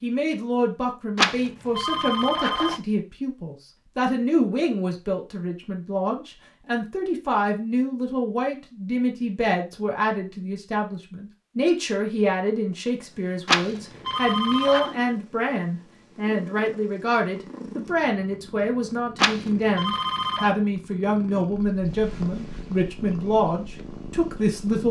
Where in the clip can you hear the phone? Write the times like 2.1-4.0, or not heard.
1.1-2.8, 13.4-14.9, 19.1-20.5.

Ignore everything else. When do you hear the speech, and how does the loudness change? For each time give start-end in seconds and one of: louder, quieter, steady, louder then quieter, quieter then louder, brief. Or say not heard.
0.0-24.8 steady.